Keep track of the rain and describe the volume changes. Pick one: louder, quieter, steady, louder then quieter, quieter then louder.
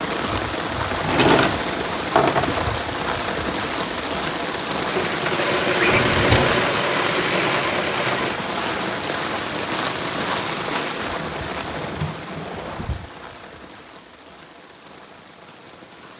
quieter.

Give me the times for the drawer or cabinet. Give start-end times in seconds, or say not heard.
0.9-2.6, 5.8-6.7, 11.2-13.1.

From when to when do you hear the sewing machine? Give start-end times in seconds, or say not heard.
4.8-8.4.